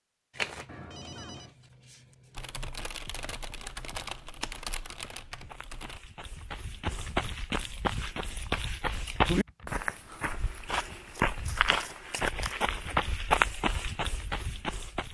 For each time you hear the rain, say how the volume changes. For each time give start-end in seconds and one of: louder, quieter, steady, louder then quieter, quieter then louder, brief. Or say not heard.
not heard.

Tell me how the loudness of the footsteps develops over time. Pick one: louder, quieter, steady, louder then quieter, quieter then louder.
louder.